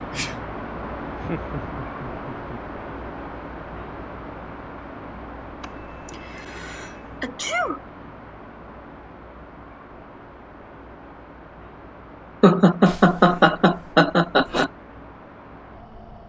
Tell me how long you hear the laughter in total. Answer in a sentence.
You can hear the laughter for 4 seconds altogether.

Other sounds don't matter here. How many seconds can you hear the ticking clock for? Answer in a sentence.
You can't hear the ticking clock here.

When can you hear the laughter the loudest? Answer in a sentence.
The loudest moment of the laughter is at 13 seconds.